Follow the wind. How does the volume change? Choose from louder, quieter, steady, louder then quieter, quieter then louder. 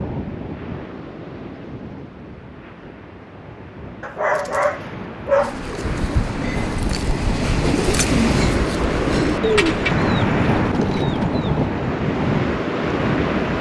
louder.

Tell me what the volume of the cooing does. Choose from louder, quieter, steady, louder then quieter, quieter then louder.
louder then quieter.